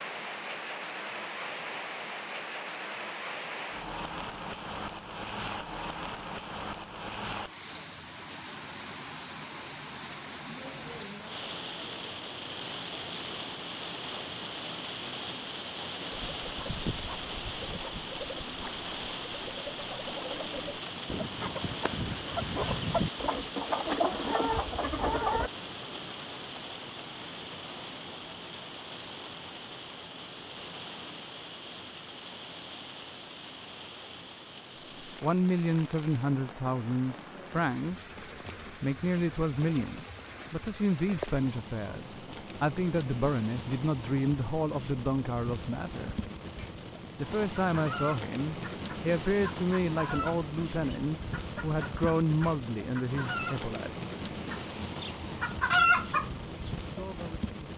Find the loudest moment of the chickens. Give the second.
56 s.